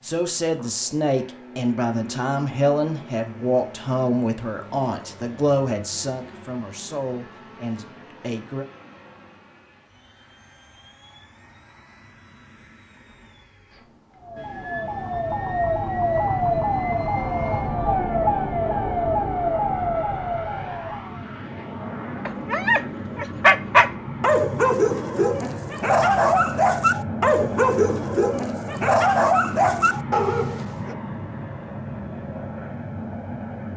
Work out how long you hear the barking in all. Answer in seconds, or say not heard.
9 s.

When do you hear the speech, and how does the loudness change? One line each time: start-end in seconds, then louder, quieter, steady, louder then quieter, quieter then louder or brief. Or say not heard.
0.0-8.7 quieter.